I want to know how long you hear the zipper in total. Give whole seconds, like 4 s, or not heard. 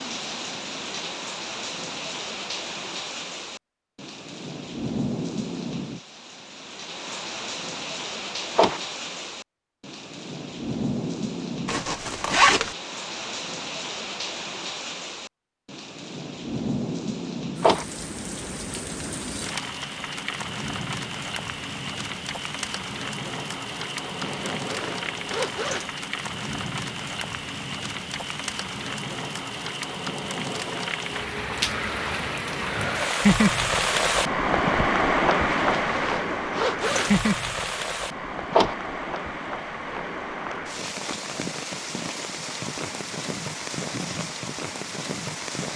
5 s.